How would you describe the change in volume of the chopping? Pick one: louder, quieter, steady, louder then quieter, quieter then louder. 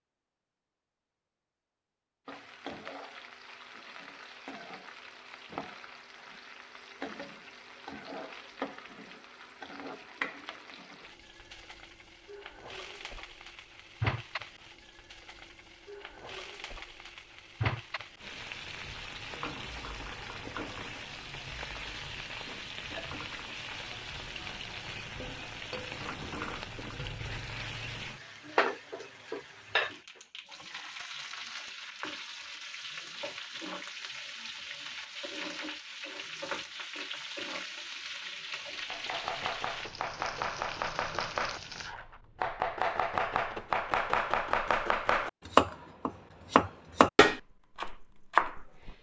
louder.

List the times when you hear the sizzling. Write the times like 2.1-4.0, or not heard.
2.2-42.0.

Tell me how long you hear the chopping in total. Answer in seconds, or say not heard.
10 s.